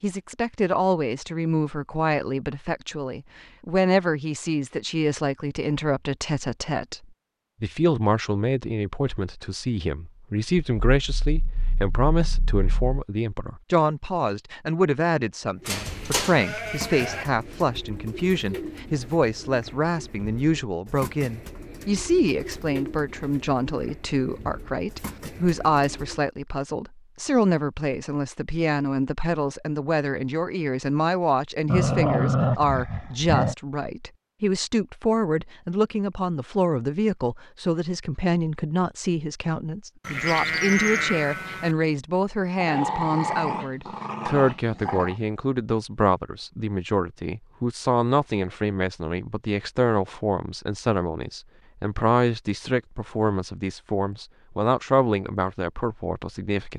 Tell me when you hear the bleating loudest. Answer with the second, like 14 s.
41 s.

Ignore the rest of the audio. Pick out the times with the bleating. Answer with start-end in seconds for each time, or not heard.
15.7-17.2, 40.0-41.8.